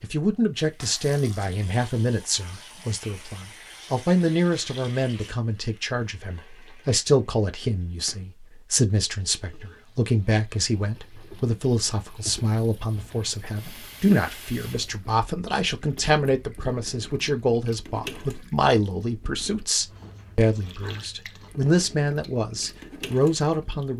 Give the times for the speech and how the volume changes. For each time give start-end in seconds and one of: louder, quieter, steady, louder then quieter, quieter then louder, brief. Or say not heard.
0.0-23.9 steady.